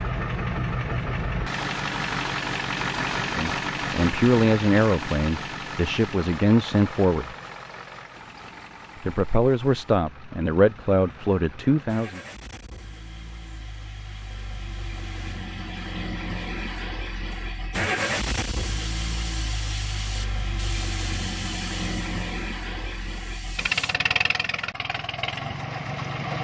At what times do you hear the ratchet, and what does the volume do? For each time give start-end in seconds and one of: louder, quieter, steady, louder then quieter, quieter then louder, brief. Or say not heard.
18.0-23.9 quieter.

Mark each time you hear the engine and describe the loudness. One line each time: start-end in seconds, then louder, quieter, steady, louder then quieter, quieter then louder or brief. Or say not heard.
0.0-26.3 quieter then louder.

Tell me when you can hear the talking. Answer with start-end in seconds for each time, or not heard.
3.3-7.3, 9.0-12.2.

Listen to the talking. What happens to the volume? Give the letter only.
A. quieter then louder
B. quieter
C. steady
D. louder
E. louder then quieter
C.